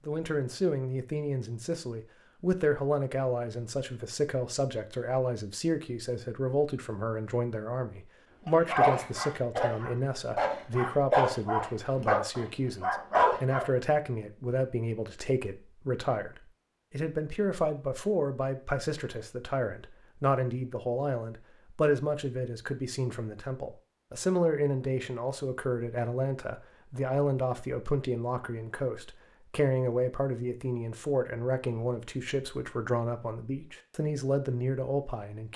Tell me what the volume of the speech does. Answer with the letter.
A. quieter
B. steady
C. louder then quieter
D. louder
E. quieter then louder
B.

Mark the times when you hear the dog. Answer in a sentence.
The dog can be heard from 8.4 to 13.7 s.